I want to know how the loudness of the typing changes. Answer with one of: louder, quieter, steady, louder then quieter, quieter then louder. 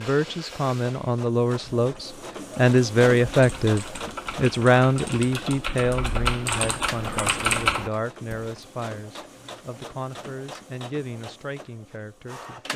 louder.